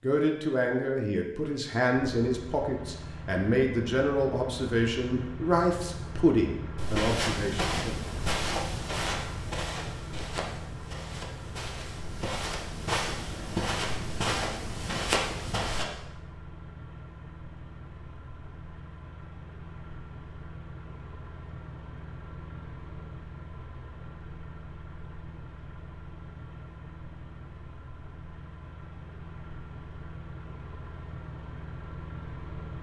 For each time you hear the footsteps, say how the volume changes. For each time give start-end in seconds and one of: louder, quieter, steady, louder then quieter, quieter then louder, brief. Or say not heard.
6.8-15.8 quieter then louder.